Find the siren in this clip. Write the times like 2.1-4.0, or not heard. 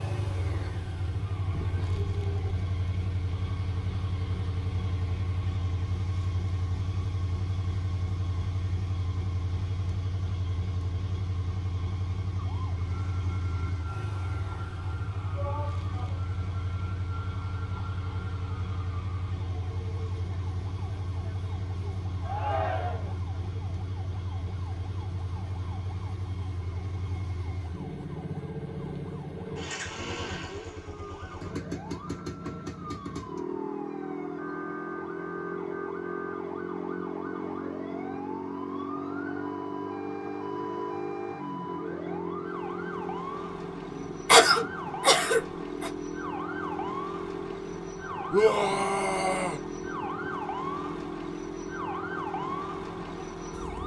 0.0-2.5, 12.3-53.8.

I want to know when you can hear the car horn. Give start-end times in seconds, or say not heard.
not heard.